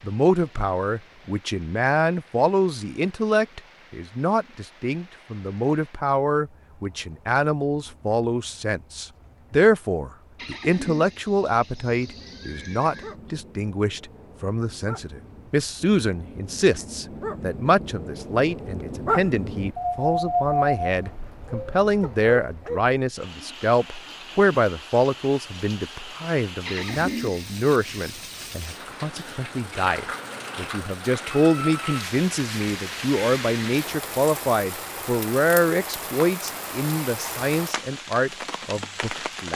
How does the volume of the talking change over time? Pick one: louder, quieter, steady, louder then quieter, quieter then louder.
steady.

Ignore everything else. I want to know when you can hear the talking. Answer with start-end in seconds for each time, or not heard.
0.0-39.5.